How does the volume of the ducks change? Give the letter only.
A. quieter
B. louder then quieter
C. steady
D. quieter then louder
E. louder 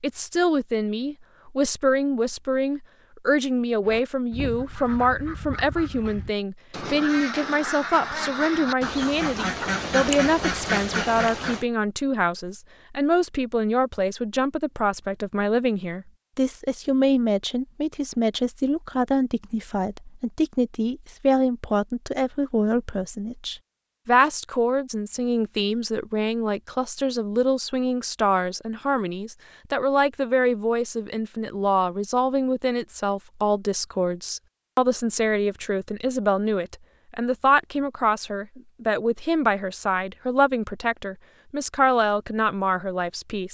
E.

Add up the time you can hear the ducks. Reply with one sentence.
The ducks can be heard for 8 seconds in total.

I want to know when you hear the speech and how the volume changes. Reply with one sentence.
You can hear the speech from 0.0 to 43.5 s, at a steady volume.